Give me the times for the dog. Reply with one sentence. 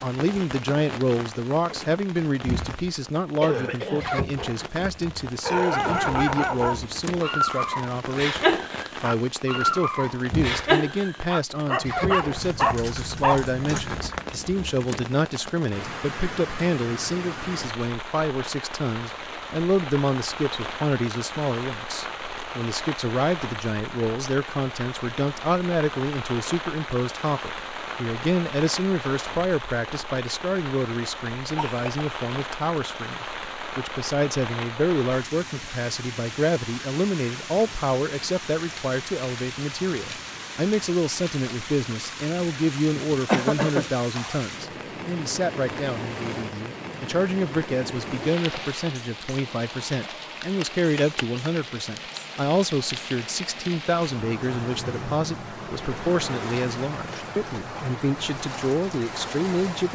The dog can be heard from 5.5 to 13.4 s.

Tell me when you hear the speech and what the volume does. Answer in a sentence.
The speech can be heard from 0.0 to 59.8 s, at a steady volume.